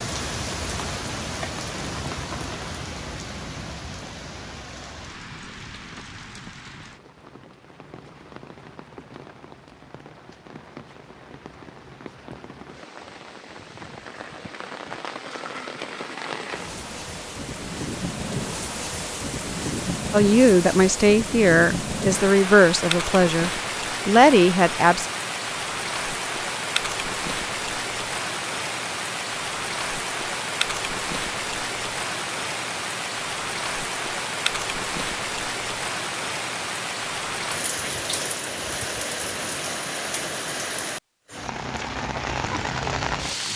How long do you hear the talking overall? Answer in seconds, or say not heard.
5 s.